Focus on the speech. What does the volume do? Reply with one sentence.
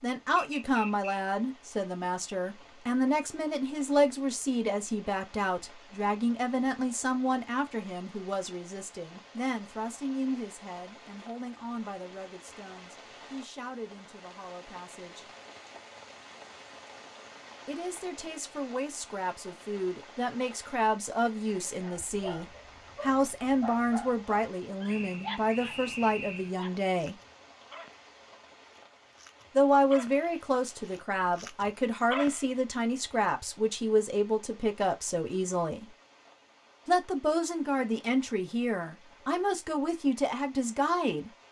The loudness of the speech goes down, then up.